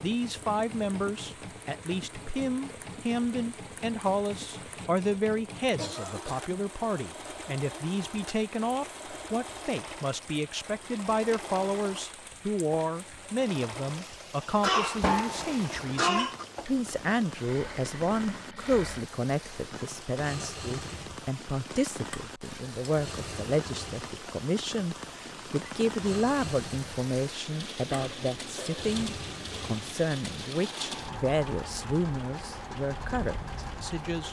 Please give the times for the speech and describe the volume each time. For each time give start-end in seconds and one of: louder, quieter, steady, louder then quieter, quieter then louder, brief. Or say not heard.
0.0-34.2 steady.